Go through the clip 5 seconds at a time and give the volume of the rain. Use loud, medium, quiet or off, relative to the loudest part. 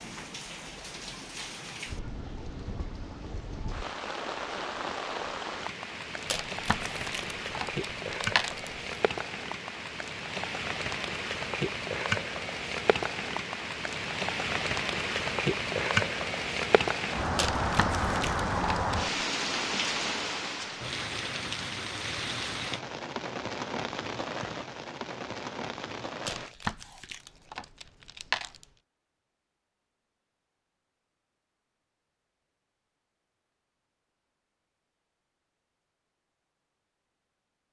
medium, medium, loud, loud, medium, medium, off, off.